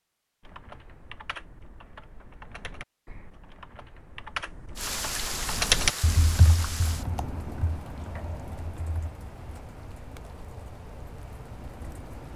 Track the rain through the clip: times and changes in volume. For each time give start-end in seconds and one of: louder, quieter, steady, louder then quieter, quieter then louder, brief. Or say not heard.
4.8-12.3 quieter.